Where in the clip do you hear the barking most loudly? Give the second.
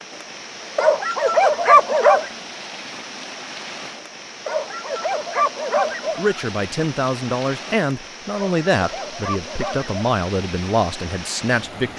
2 s.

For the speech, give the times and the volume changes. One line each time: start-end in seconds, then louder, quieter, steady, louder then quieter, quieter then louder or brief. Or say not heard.
6.2-11.9 steady.